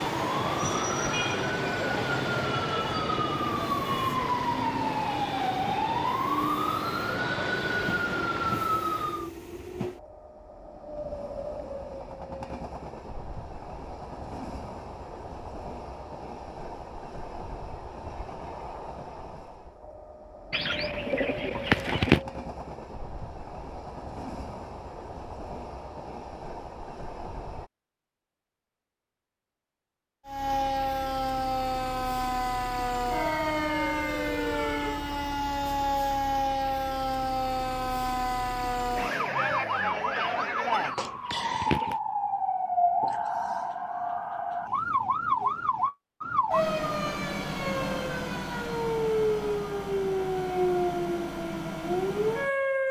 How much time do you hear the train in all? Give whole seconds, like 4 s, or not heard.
28 s.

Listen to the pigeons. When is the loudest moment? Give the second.
22 s.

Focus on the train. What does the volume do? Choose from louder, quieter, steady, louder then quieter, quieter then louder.
steady.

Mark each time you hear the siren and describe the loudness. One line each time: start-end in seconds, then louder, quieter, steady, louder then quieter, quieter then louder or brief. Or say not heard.
0.0-9.3 steady
30.2-52.8 steady.